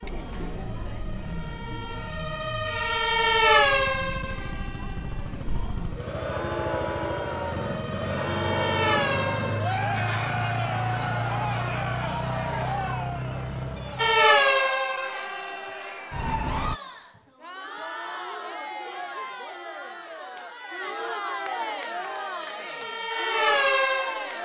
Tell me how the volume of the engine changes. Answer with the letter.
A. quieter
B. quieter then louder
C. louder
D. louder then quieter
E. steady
C.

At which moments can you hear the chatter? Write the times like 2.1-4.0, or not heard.
0.0-24.4.